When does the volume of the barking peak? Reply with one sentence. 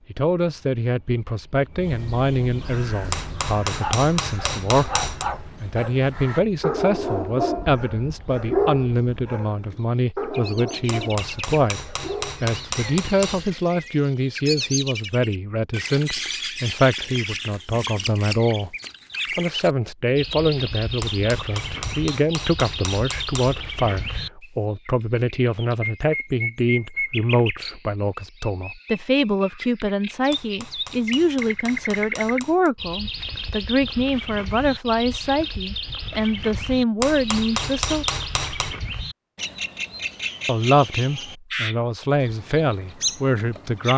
The volume of the barking peaks at 9 seconds.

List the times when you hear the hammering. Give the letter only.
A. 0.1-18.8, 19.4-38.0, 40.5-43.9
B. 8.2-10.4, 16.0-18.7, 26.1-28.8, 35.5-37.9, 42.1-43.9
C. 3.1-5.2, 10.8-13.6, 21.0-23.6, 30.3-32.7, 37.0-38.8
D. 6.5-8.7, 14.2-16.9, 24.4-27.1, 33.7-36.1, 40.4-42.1
C.